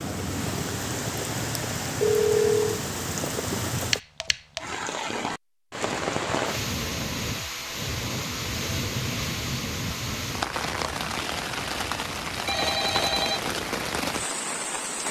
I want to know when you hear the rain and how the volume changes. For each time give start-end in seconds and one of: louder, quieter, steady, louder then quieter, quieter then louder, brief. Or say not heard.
0.0-15.0 steady.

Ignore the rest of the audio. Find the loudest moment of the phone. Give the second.
2 s.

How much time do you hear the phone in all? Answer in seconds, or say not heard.
2 s.